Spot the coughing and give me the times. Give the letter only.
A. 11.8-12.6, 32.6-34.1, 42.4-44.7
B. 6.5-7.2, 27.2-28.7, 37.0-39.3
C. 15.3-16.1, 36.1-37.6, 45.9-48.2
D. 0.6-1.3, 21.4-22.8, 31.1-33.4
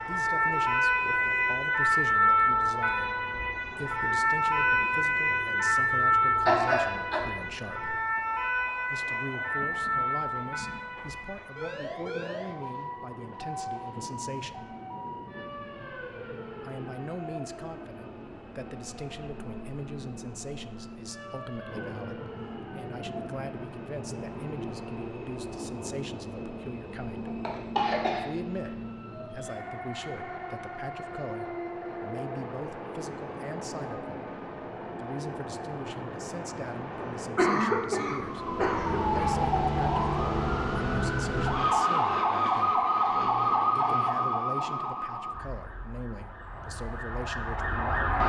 B.